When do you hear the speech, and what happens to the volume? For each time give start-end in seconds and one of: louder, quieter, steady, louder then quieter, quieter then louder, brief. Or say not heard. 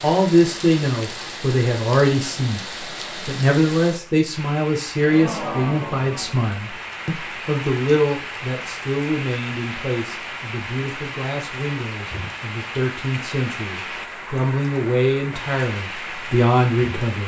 0.0-17.2 quieter then louder.